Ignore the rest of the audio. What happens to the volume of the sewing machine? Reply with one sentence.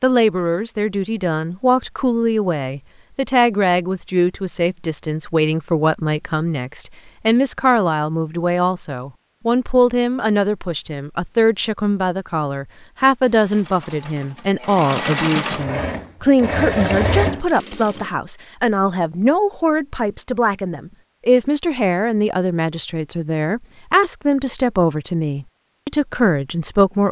The volume of the sewing machine goes up.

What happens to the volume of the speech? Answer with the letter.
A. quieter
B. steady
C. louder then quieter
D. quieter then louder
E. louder
B.